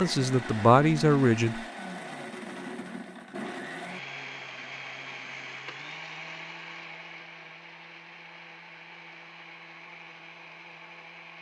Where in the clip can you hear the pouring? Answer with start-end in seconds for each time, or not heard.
not heard.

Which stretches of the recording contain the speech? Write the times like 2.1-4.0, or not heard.
0.0-1.6.